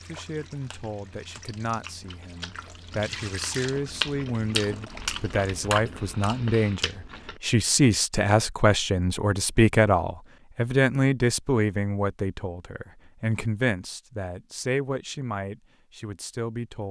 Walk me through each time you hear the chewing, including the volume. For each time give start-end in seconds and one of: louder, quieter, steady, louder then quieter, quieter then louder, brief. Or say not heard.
0.0-7.4 louder.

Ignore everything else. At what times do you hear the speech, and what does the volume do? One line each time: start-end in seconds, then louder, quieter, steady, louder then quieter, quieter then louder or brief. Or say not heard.
0.0-16.8 louder then quieter.